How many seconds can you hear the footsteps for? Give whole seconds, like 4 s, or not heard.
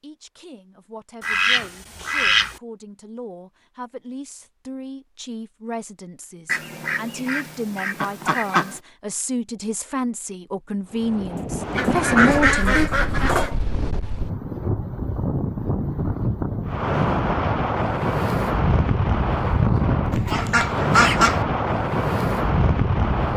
not heard.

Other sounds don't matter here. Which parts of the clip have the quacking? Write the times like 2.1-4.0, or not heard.
1.2-2.5, 6.5-8.8, 11.8-13.6, 20.1-21.4.